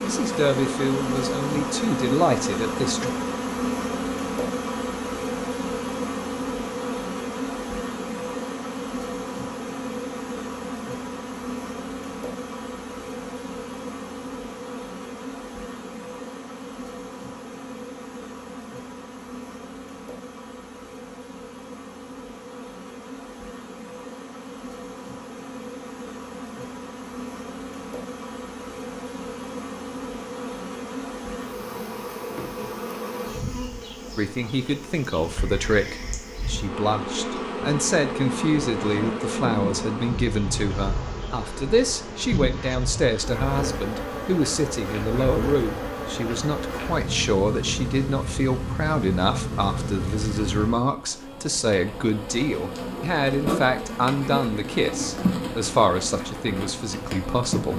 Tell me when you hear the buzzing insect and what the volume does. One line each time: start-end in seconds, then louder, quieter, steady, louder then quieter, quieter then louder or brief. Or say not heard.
0.0-57.7 quieter then louder.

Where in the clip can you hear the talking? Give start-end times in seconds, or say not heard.
0.0-3.0, 34.1-57.7.